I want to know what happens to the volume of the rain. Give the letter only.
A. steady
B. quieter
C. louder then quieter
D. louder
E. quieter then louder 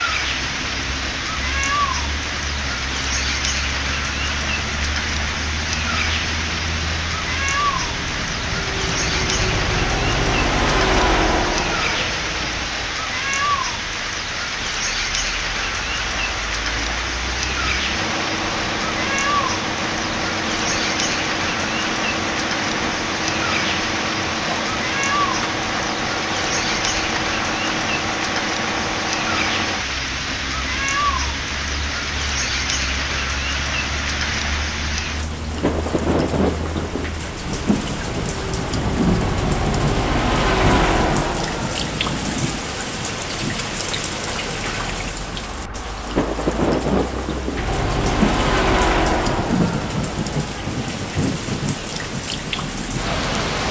A.